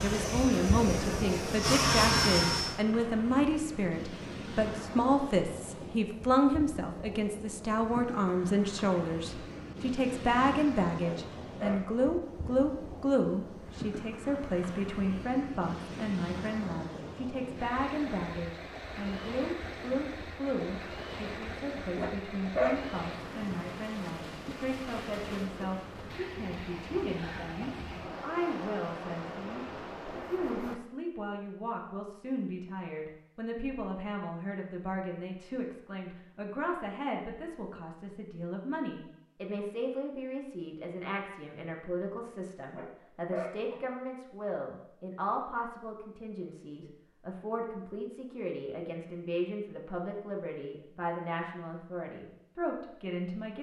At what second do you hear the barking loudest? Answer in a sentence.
The volume of the barking peaks at 23 seconds.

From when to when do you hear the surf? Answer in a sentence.
You can hear the surf from 0.0 to 30.8 s.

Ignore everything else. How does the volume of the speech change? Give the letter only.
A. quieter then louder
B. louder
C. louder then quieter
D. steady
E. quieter
E.